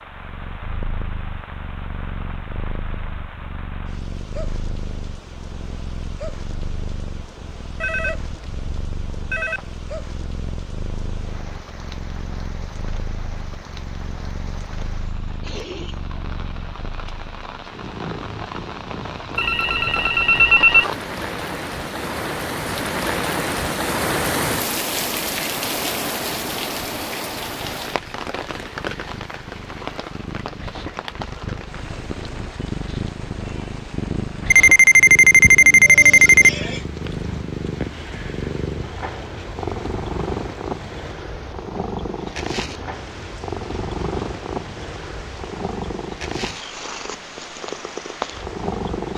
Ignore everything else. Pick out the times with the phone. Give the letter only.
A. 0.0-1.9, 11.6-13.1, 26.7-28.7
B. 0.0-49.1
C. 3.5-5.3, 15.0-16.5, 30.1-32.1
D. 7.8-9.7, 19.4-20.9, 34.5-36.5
D.